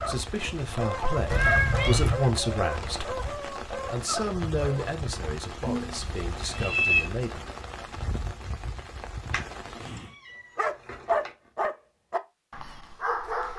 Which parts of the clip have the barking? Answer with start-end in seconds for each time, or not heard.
0.0-4.8, 10.6-13.5.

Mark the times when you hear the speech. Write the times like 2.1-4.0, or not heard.
0.1-7.5.